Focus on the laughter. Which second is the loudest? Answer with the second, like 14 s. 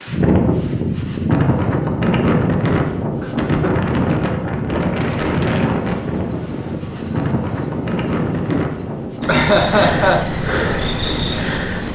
10 s.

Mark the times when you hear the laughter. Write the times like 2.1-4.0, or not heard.
3.2-3.8, 9.2-10.3.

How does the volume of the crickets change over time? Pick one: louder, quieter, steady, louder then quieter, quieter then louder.
louder.